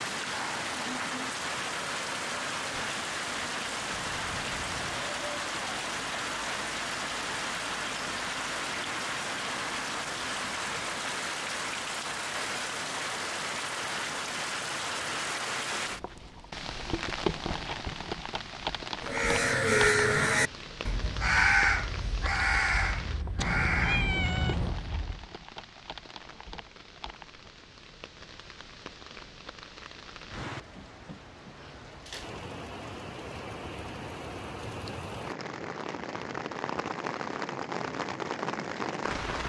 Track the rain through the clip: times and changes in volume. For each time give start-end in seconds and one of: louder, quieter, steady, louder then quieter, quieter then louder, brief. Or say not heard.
0.0-39.4 quieter then louder.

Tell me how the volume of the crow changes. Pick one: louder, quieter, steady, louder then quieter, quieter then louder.
quieter.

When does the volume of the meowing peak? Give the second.
24 s.